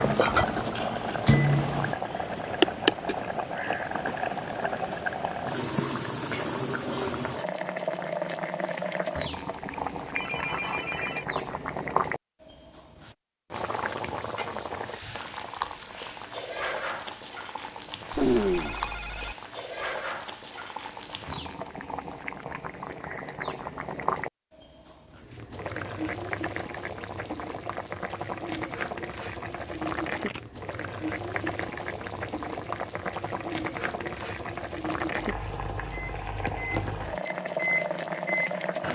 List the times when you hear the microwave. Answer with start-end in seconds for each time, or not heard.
0.0-1.9, 35.9-38.5.